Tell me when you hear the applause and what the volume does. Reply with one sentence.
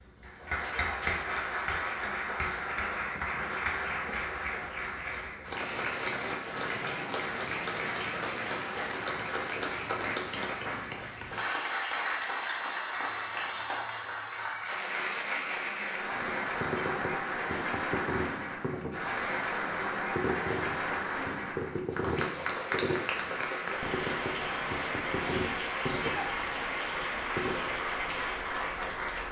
You can hear the applause from 0.0 to 29.2 s, at a steady volume.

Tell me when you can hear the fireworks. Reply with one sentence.
You can hear the fireworks from 16.2 to 27.8 s.